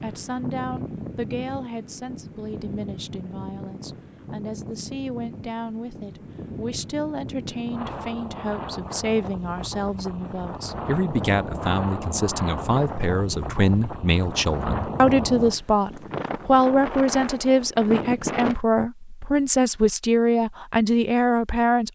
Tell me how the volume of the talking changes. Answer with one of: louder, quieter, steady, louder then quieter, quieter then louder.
louder.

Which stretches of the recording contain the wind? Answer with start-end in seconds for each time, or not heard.
0.0-18.6.